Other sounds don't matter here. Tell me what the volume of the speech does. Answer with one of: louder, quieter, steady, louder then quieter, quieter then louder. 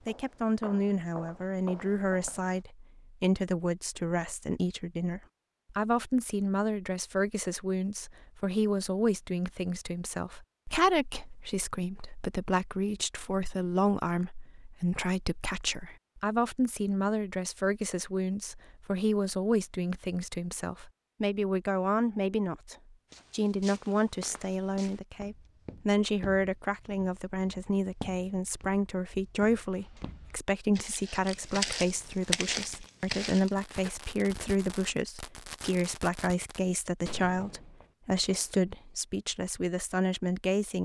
steady.